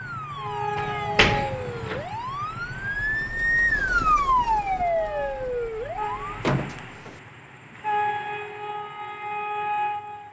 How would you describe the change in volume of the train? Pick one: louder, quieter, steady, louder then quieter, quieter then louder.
quieter then louder.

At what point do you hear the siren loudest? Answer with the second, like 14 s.
4 s.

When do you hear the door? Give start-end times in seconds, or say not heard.
0.8-1.9, 6.4-7.2.